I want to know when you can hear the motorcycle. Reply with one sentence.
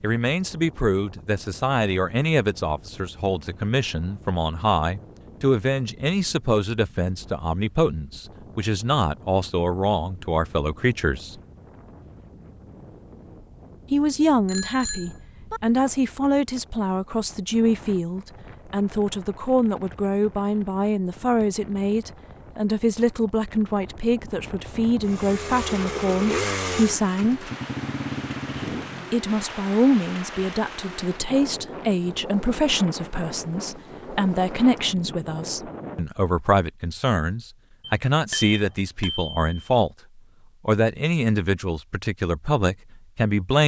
The motorcycle can be heard from 25.0 to 29.1 s.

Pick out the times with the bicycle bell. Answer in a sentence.
You can hear the bicycle bell from 14.4 to 15.6 s and from 37.9 to 39.6 s.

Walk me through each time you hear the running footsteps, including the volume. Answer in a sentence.
The running footsteps can't be heard in this clip.